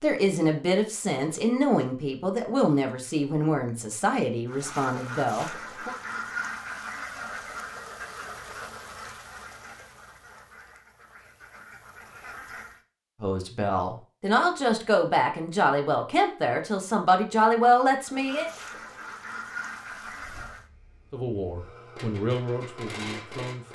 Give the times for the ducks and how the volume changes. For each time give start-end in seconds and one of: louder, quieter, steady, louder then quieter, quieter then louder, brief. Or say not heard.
4.5-12.8 quieter
18.1-20.6 brief.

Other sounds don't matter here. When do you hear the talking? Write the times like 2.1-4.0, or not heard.
0.0-6.0, 13.2-18.5, 21.1-23.7.